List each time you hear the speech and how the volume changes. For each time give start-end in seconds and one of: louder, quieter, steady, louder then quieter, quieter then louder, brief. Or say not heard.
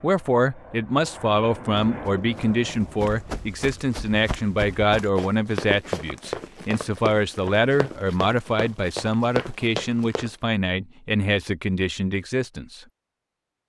0.0-12.8 steady.